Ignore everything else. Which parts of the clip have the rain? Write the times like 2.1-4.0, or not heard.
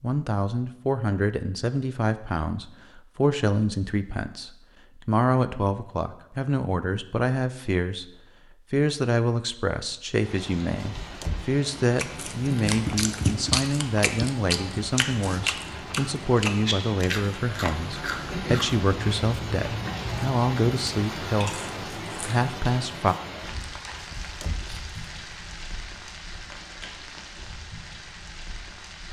10.2-29.0.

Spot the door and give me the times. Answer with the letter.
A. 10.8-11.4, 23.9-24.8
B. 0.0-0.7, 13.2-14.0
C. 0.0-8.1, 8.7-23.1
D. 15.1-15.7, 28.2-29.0
A.